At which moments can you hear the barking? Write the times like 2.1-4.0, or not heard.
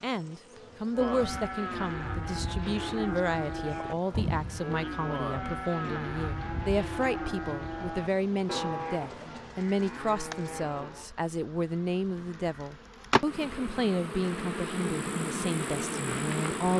not heard.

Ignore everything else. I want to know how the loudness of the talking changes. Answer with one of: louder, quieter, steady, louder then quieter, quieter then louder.
steady.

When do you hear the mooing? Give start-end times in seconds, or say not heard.
0.9-11.1.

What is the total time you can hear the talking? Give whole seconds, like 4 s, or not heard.
17 s.